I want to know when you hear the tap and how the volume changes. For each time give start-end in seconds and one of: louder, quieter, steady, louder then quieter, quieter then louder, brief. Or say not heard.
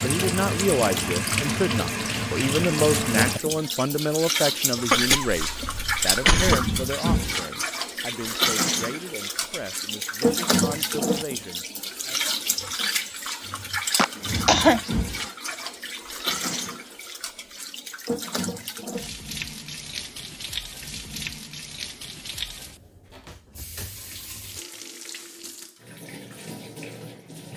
0.0-27.5 quieter.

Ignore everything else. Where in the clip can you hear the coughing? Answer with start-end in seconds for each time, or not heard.
4.9-6.8, 13.9-14.8.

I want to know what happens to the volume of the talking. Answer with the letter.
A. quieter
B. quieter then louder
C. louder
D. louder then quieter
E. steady
A.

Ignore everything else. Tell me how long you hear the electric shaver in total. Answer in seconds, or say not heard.
not heard.